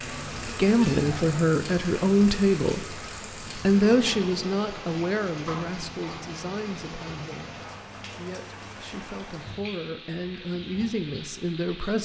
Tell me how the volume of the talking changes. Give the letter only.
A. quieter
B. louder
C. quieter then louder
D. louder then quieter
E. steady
C.